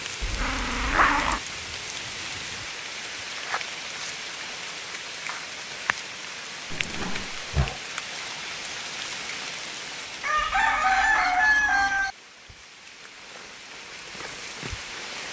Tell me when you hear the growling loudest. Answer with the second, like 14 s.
1 s.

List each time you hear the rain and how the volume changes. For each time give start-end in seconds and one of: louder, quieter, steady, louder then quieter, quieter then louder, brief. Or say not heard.
0.0-15.2 quieter.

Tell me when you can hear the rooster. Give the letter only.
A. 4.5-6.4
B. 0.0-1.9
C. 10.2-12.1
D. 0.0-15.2
C.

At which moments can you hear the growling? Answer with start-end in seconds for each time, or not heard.
0.2-1.4, 6.7-7.8, 10.3-12.1.